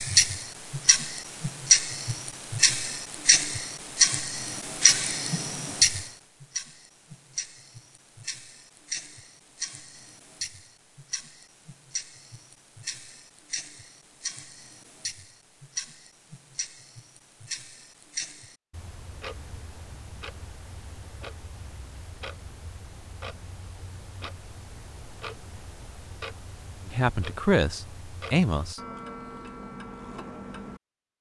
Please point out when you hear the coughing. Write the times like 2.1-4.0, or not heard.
not heard.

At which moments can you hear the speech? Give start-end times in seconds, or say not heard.
26.9-28.8.